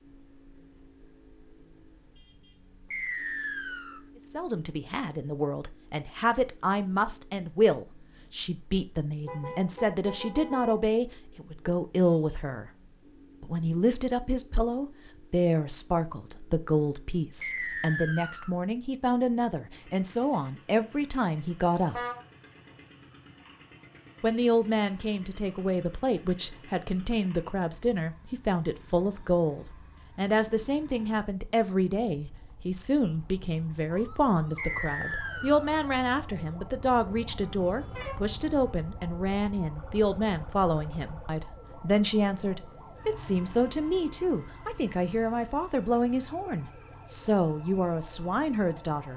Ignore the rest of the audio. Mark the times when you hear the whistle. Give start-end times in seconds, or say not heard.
2.9-4.0, 17.4-18.6, 34.5-35.7.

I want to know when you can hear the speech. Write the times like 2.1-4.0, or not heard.
4.2-12.7, 13.4-22.0, 24.2-49.1.